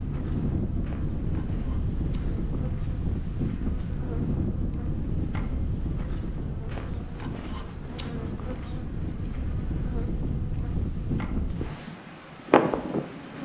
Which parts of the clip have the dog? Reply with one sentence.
The dog can't be heard in this clip.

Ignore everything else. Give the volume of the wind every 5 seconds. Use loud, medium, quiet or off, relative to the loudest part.
loud, medium, loud.